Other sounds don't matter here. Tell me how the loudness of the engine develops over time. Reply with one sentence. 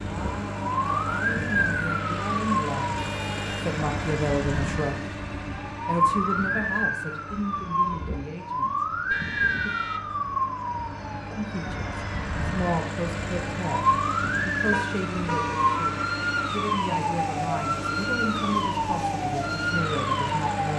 The loudness of the engine goes down, then up.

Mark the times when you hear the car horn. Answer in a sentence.
The car horn can be heard from 3.0 to 3.6 s, from 9.1 to 10.2 s and from 14.7 to 15.8 s.